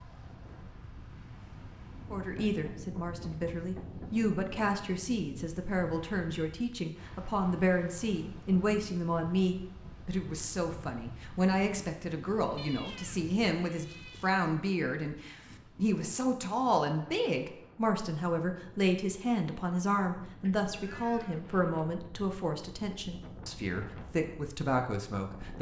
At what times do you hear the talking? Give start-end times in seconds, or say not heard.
2.1-25.5.